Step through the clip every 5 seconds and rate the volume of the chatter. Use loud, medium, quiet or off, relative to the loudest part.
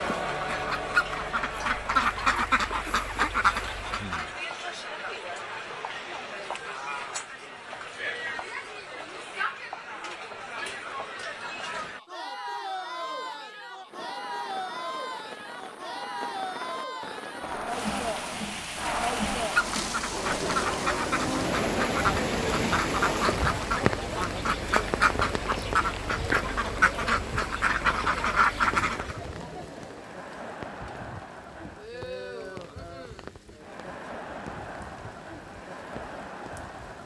loud, loud, loud, loud, loud, medium, medium, medium.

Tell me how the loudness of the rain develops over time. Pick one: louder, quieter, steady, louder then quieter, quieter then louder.
louder then quieter.